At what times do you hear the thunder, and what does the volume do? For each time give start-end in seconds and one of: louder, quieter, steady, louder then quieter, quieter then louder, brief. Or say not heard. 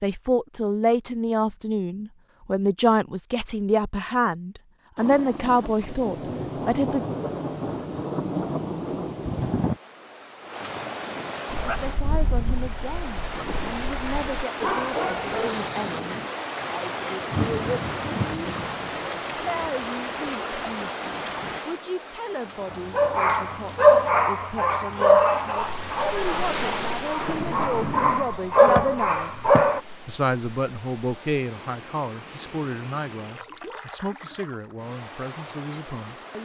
5.0-9.8 louder
17.2-21.6 quieter
27.2-28.2 brief.